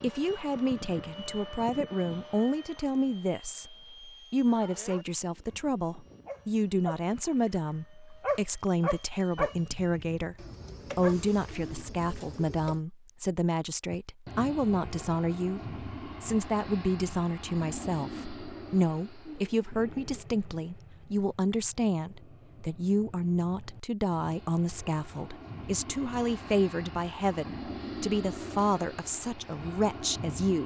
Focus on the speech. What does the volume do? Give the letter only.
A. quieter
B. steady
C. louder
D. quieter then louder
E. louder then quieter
B.